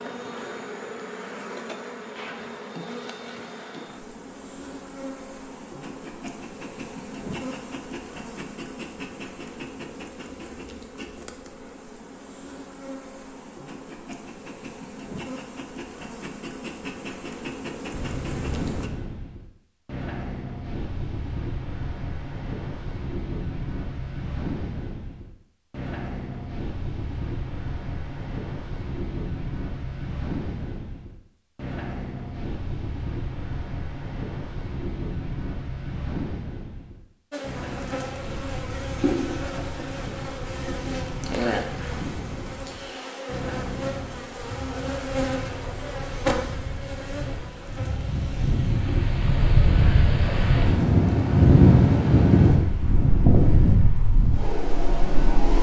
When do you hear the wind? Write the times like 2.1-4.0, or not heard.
17.9-55.5.